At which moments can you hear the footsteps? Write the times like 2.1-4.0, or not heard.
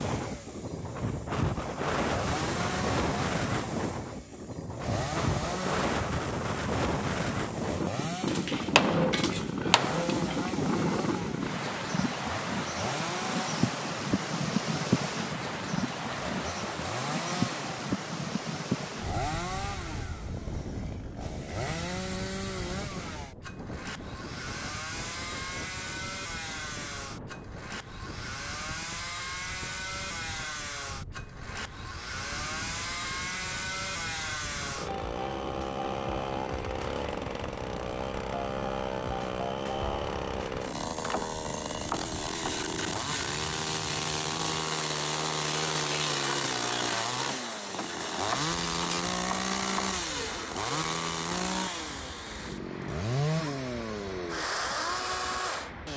not heard.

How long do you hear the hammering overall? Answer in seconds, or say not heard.
2 s.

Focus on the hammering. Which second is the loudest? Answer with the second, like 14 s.
9 s.